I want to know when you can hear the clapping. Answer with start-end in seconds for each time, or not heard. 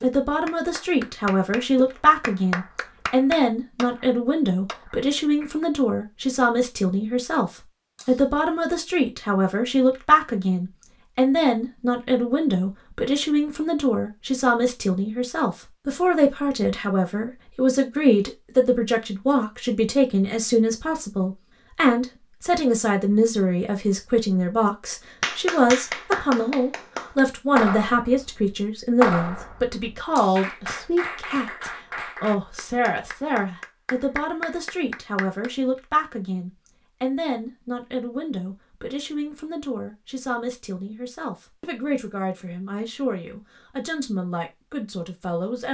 0.0-5.7, 25.2-35.5.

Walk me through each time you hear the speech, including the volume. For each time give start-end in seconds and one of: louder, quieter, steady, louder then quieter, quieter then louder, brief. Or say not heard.
0.0-45.6 quieter.